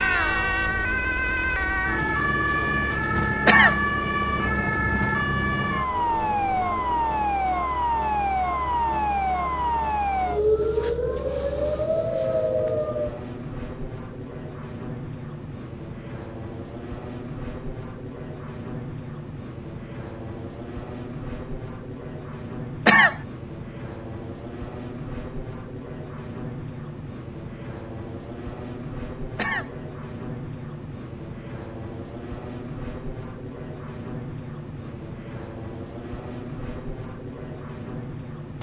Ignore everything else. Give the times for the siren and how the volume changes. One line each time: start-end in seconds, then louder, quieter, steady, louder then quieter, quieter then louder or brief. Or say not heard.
0.0-13.2 steady.